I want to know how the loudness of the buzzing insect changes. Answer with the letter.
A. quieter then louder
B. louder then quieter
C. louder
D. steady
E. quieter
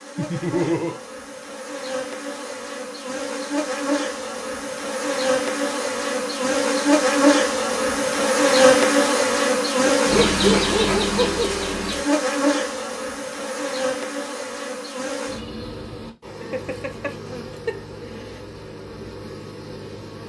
B.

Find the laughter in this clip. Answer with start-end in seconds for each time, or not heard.
0.1-1.0, 9.9-11.4, 16.4-17.8.